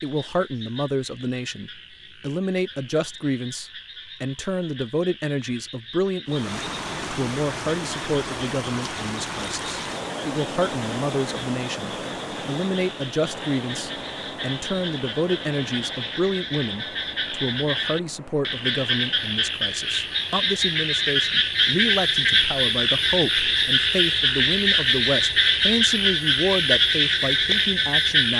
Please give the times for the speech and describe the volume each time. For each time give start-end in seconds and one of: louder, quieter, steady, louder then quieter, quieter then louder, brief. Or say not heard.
0.0-28.3 steady.